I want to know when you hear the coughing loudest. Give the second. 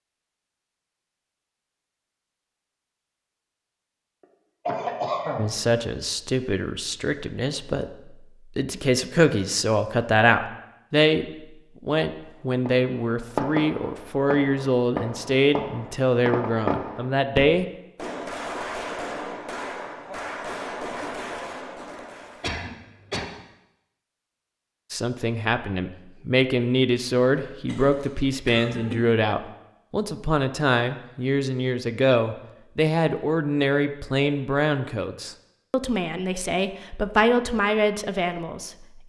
5 s.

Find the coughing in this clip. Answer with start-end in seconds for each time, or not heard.
4.7-5.5, 22.4-23.2, 27.6-29.1.